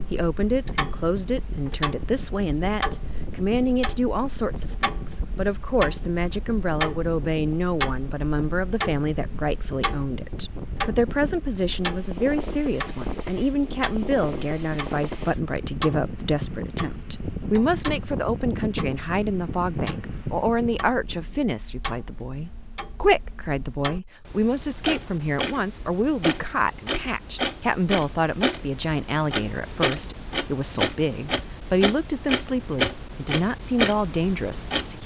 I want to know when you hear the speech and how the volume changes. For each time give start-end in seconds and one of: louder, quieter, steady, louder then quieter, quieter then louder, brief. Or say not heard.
0.1-35.0 steady.